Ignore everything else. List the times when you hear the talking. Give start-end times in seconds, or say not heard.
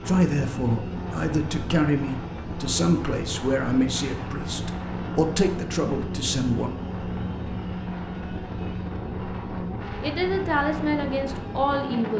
0.1-6.8, 10.0-12.1.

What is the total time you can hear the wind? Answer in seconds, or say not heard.
12 s.